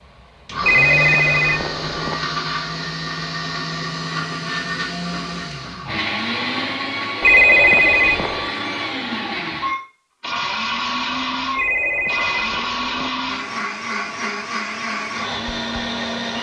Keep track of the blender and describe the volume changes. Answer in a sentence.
The loudness of the blender stays about the same.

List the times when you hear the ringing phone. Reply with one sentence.
You can hear the ringing phone from 0.6 to 2.2 s, from 7.2 to 8.5 s and from 11.6 to 13.1 s.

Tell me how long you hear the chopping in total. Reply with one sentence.
The chopping can't be heard in this clip.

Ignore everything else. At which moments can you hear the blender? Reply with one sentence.
The blender can be heard from 0.0 to 16.3 s.